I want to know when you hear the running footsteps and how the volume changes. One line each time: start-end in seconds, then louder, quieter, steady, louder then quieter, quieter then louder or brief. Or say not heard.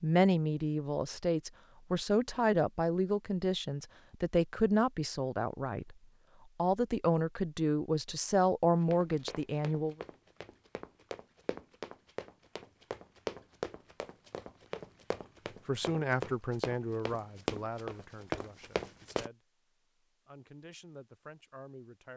8.8-19.3 louder.